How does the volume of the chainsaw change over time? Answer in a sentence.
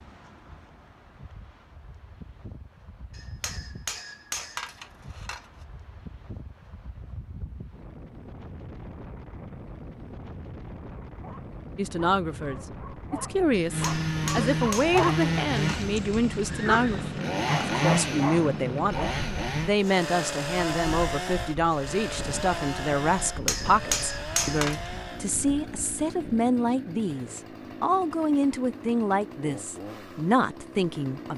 The loudness of the chainsaw goes down.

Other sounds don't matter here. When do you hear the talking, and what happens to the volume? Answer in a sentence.
You can hear the talking from 11.8 to 31.3 s, at a steady volume.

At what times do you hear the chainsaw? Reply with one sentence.
You can hear the chainsaw from 13.7 to 31.3 s.